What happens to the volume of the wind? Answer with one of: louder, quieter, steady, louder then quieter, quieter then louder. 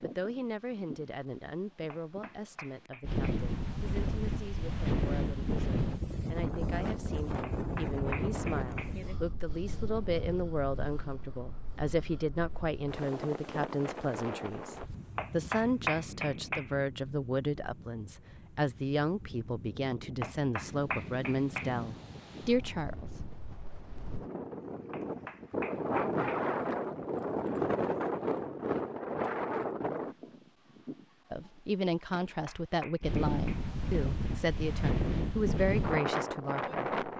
quieter then louder.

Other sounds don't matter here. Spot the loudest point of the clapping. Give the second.
16 s.